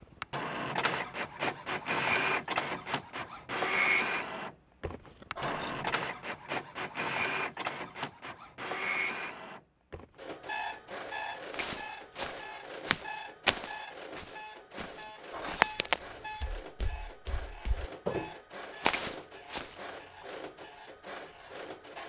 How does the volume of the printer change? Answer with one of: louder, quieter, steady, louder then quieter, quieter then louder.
quieter.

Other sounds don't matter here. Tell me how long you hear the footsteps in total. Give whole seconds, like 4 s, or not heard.
8 s.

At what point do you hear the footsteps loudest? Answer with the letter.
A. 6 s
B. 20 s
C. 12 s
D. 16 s
D.